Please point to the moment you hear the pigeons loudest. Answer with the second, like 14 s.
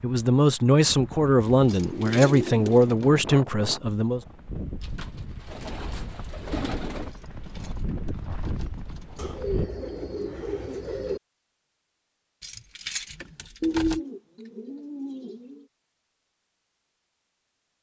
14 s.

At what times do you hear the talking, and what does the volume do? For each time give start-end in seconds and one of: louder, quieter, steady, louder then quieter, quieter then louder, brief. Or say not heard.
0.0-4.2 steady.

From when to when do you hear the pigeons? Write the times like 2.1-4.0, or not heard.
1.4-2.9, 4.8-7.1, 9.2-11.2, 13.6-15.7.